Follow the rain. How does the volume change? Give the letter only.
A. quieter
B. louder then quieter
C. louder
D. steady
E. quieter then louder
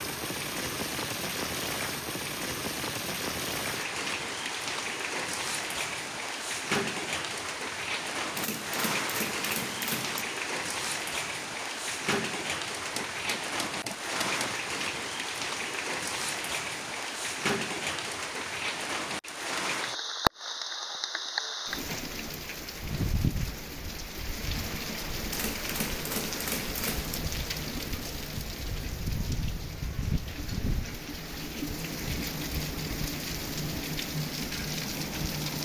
D.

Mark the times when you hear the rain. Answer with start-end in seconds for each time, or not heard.
0.0-35.6.